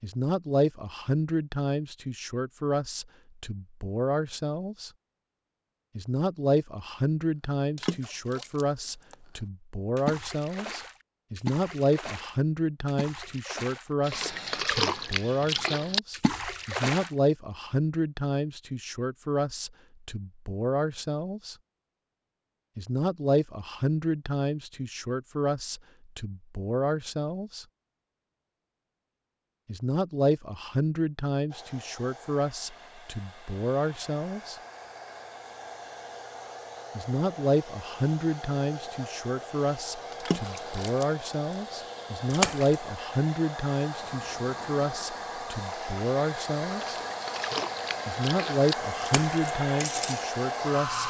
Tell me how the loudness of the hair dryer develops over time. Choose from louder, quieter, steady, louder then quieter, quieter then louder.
louder.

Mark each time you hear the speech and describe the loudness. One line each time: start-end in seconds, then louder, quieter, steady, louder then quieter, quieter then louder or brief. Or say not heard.
0.0-4.9 quieter then louder
6.0-21.6 steady
22.8-27.6 quieter then louder
29.6-34.5 quieter then louder
37.0-47.0 steady
48.0-51.0 brief.